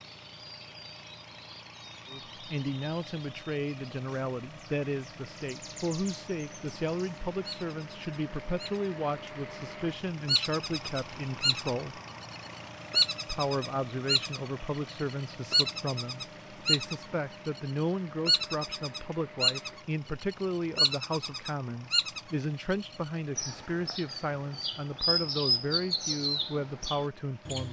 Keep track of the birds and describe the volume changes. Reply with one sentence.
The loudness of the birds goes up.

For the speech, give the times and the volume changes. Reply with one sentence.
You can hear the speech from 2.1 to 12.0 s, at a steady volume; and from 13.2 to 27.6 s, at a steady volume.